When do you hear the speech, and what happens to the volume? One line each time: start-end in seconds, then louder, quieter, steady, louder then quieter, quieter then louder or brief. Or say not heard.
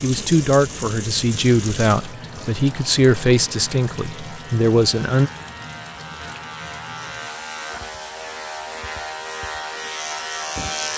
0.0-5.3 steady.